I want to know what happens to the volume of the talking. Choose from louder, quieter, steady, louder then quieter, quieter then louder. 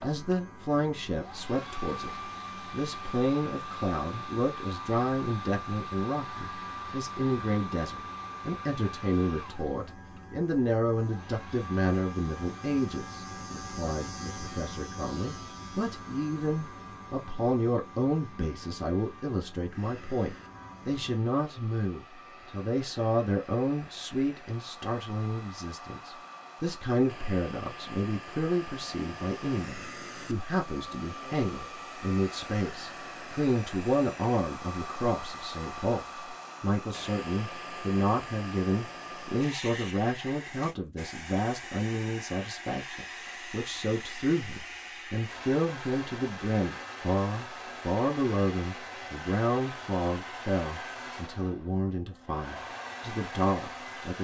steady.